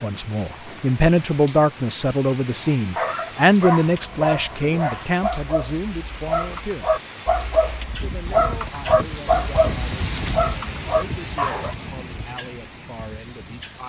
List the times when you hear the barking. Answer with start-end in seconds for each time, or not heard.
2.9-11.8.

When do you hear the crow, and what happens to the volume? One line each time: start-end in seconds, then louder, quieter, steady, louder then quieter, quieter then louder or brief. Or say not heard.
not heard.